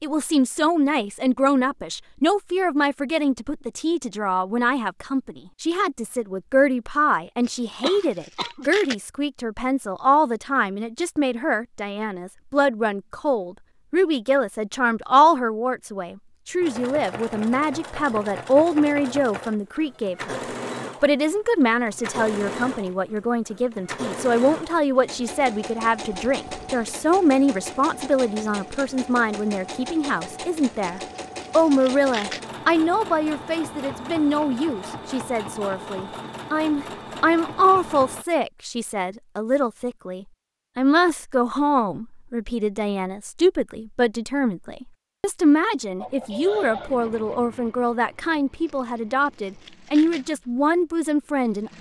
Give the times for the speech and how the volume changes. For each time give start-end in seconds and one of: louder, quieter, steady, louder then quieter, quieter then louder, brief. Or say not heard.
0.0-20.4 steady
21.0-51.7 steady.